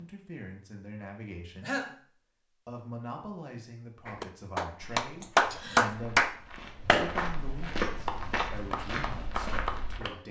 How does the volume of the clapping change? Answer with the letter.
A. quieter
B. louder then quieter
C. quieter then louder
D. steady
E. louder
A.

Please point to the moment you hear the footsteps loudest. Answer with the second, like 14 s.
8 s.